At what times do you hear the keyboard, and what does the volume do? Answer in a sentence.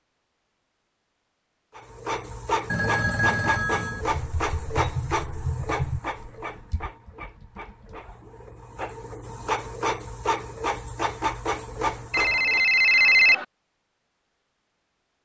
You can hear the keyboard from 4.0 to 8.2 s, getting quieter.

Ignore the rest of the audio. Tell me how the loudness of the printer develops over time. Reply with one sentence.
The volume of the printer goes down, then up.